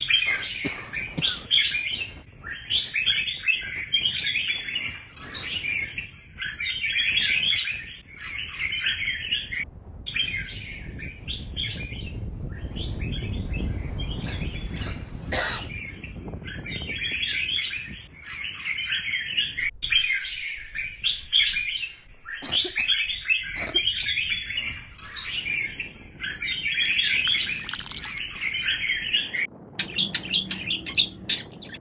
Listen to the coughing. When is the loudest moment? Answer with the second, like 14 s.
15 s.